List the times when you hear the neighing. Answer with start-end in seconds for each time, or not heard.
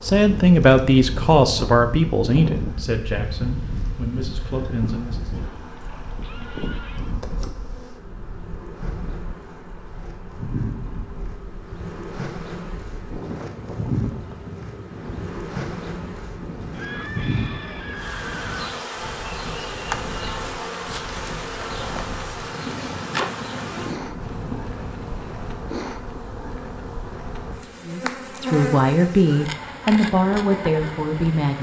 5.3-7.2, 16.7-18.6, 24.2-25.6.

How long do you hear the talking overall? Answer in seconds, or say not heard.
9 s.